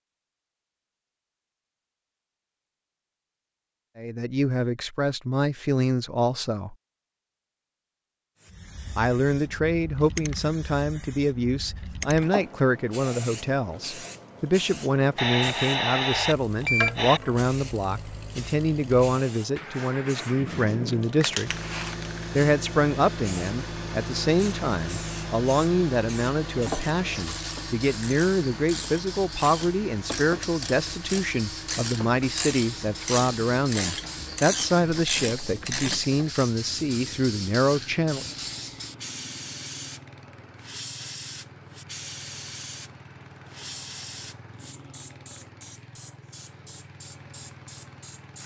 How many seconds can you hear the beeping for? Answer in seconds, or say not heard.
2 s.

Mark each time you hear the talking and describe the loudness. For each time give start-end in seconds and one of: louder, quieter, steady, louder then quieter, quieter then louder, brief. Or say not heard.
4.0-6.8 brief
8.9-21.5 steady
22.4-38.4 steady.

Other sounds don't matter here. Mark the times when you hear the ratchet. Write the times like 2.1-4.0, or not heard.
26.6-36.5.